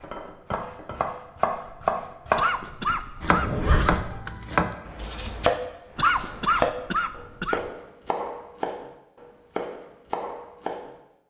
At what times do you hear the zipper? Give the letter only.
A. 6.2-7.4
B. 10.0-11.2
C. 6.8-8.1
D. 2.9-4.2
D.